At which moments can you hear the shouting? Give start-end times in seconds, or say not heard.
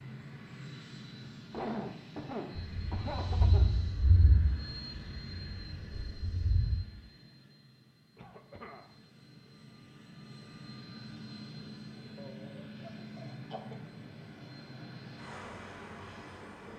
not heard.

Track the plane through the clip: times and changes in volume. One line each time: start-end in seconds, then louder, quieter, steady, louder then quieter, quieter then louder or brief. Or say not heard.
0.0-16.7 quieter then louder.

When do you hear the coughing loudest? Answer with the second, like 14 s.
2 s.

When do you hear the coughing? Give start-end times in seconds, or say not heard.
1.5-3.6, 8.2-8.8, 12.2-13.8.